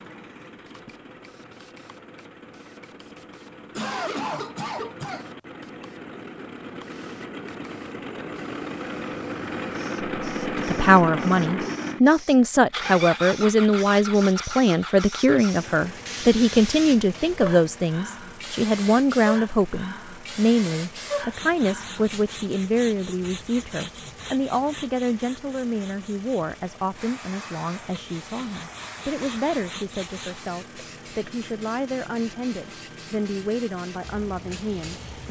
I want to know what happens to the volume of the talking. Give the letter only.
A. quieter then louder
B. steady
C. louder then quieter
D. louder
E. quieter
E.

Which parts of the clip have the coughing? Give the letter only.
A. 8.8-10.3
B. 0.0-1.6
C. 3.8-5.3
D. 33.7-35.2
C.